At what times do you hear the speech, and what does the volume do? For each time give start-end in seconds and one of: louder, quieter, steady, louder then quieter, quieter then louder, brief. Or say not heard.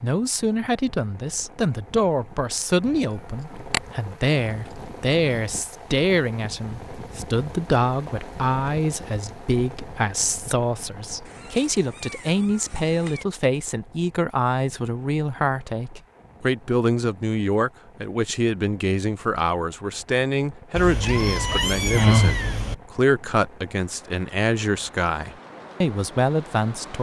0.0-26.9 steady.